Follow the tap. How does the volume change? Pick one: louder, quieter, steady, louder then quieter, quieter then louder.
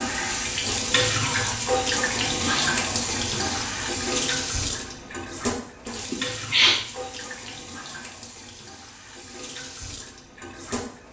quieter.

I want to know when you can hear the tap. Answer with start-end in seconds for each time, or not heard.
0.0-11.0.